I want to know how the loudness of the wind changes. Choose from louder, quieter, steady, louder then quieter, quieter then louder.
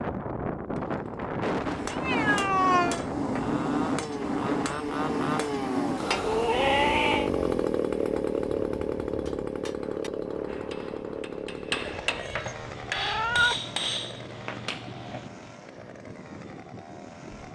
quieter.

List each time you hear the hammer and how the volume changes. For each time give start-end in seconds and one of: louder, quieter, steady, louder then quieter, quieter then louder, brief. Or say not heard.
1.6-6.2 steady
9.2-15.4 louder then quieter.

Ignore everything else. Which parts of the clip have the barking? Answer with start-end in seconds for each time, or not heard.
not heard.